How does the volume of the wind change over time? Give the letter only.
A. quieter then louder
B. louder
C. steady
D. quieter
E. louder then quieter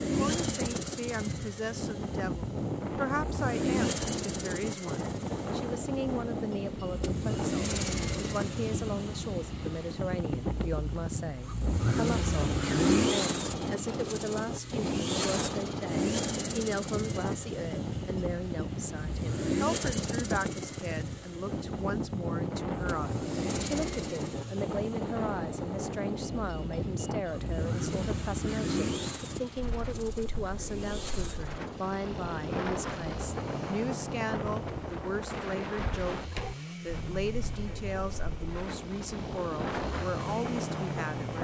C.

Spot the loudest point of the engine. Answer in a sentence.
The volume of the engine peaks at 13 seconds.